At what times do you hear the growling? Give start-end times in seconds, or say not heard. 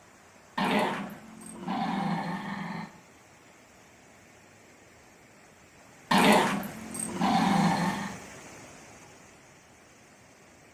0.6-2.9, 6.1-8.2.